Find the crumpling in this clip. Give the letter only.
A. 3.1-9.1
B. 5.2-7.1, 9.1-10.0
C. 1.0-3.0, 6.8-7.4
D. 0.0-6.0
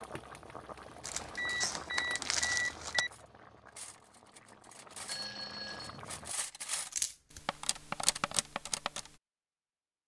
C.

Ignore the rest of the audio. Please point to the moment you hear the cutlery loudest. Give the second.
8 s.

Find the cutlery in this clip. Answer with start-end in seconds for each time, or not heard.
3.1-9.1.